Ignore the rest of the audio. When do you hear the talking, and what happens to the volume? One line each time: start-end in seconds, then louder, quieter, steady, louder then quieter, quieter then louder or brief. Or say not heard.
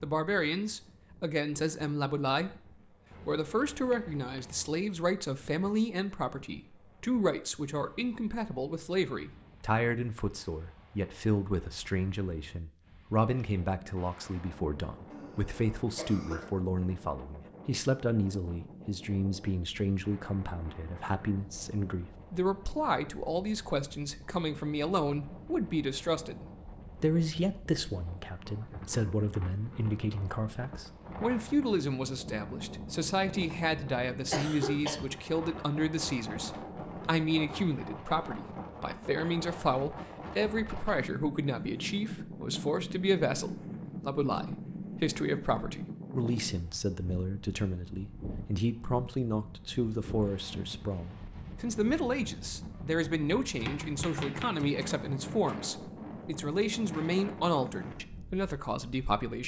0.0-59.4 steady.